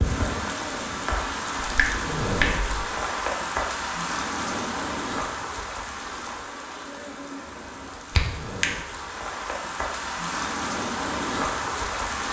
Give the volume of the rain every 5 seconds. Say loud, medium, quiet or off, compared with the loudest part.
loud, medium, loud.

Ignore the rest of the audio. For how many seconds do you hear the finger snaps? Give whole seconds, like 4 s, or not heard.
2 s.